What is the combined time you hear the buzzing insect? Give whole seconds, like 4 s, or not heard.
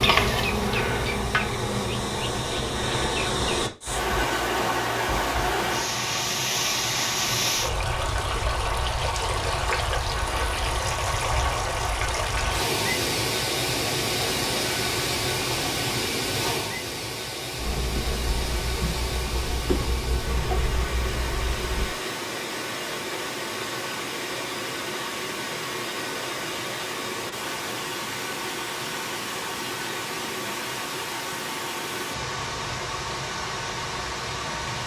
8 s.